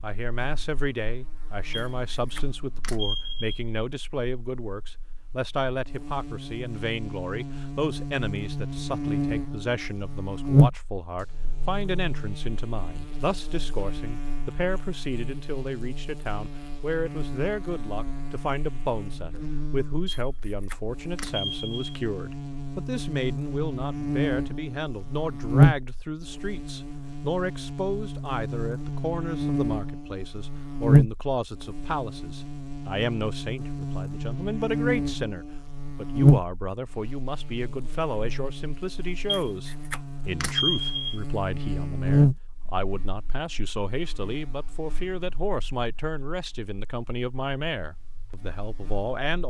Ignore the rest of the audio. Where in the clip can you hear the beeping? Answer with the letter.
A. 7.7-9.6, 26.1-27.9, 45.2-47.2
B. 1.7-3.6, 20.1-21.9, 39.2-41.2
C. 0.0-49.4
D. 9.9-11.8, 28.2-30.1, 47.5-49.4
B.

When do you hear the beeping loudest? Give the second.
41 s.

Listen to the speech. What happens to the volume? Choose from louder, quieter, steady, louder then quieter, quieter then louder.
steady.